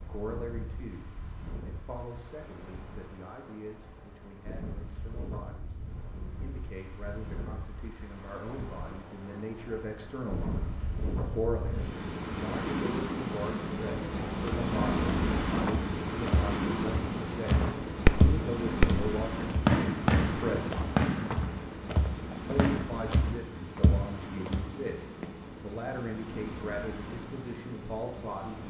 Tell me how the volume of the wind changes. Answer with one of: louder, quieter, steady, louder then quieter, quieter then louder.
louder then quieter.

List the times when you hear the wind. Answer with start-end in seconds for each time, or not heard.
0.0-28.6.